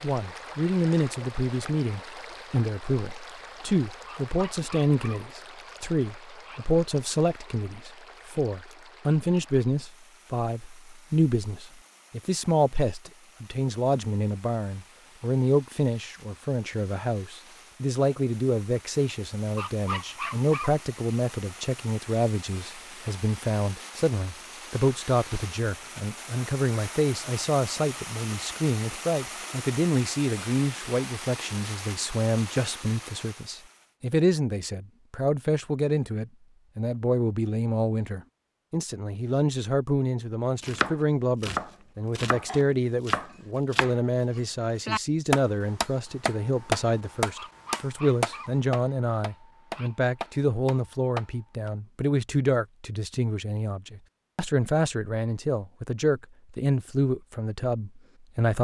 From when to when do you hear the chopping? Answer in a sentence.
You can hear the chopping from 40.6 to 51.7 s.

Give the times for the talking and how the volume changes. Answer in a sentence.
The talking can be heard from 0.0 to 58.5 s, at a steady volume.